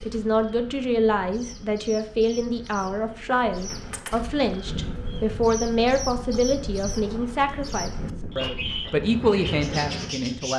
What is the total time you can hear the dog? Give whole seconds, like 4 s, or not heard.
not heard.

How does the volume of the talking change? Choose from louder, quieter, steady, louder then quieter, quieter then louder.
steady.